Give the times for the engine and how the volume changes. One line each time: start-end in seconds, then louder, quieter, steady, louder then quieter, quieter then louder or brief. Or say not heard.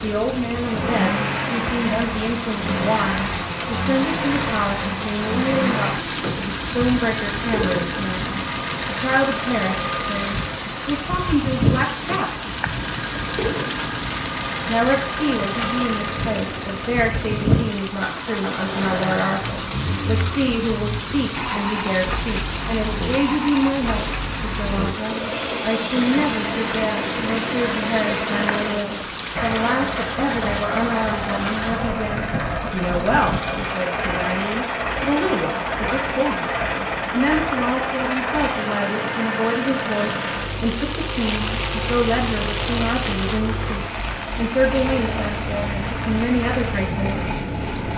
0.2-47.9 steady.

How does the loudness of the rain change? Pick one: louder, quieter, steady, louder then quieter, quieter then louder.
steady.